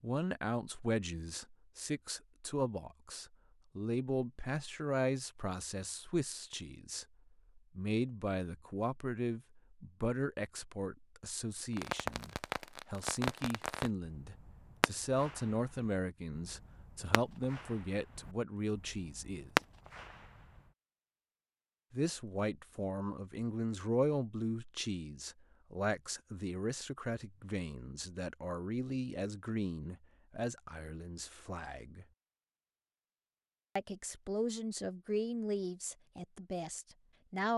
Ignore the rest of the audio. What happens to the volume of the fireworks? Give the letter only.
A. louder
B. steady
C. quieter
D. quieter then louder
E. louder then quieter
D.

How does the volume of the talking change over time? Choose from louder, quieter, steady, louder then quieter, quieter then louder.
steady.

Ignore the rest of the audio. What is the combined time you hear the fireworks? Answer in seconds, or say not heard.
9 s.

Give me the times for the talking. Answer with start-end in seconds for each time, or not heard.
0.0-19.5, 21.9-32.0, 33.8-37.5.